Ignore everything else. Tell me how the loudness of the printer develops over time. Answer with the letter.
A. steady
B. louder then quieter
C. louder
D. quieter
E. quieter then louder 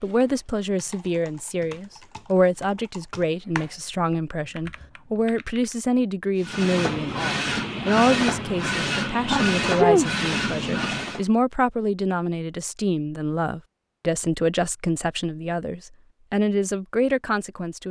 A.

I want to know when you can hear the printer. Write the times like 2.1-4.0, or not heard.
6.4-11.2.